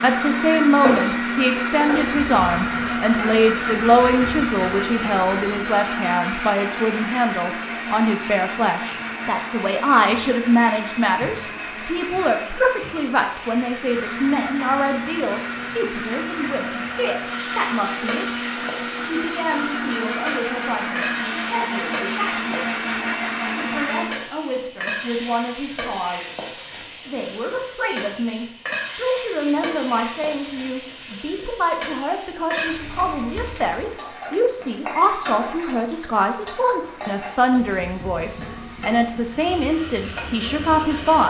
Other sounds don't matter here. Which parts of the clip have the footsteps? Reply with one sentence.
You can't hear the footsteps here.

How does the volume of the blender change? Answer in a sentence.
The loudness of the blender goes down, then up.